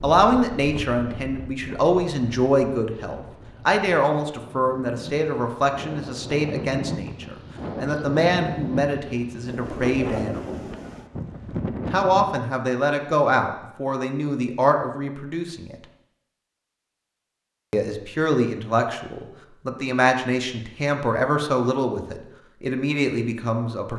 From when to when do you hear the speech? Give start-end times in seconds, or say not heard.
0.0-10.7, 11.9-15.8, 17.7-23.9.